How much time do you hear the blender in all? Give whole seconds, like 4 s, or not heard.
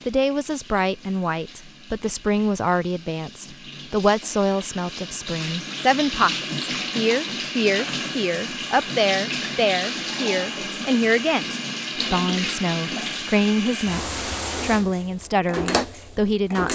not heard.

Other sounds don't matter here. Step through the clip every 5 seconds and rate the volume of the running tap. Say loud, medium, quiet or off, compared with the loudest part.
quiet, loud, loud, loud.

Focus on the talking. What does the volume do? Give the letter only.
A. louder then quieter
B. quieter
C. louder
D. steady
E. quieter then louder
D.